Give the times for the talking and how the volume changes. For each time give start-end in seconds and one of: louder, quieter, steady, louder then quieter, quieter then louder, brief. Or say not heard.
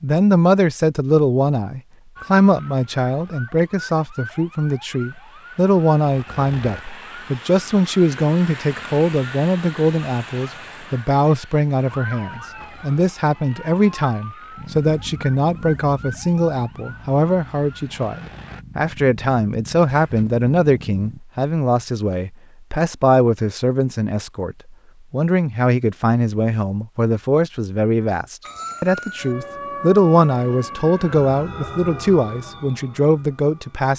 0.0-33.9 steady.